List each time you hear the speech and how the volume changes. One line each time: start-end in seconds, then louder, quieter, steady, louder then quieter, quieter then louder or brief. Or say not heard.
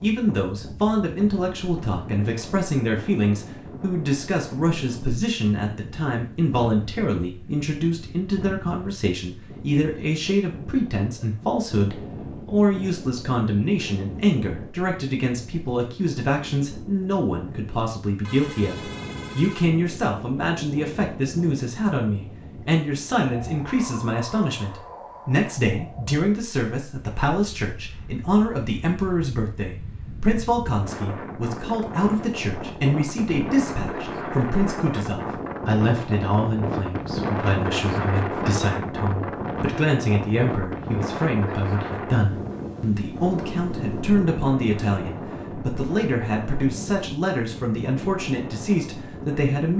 0.0-49.7 steady.